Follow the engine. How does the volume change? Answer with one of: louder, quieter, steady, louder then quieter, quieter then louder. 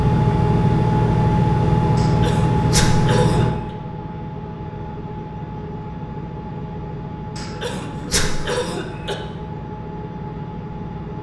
quieter.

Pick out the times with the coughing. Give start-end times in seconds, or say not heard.
1.9-3.5, 7.3-9.2.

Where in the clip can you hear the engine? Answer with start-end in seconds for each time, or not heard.
0.0-11.1.